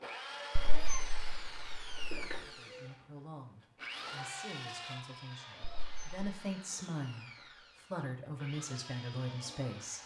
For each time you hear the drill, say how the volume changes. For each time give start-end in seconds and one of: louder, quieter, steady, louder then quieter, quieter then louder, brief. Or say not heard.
0.0-10.0 quieter.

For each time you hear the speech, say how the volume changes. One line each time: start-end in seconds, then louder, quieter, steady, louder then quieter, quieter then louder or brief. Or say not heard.
2.4-10.0 louder.